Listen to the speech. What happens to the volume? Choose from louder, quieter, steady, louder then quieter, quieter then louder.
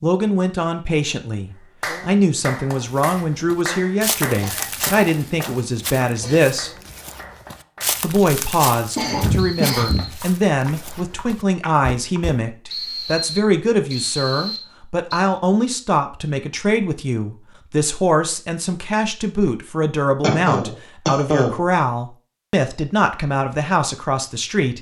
steady.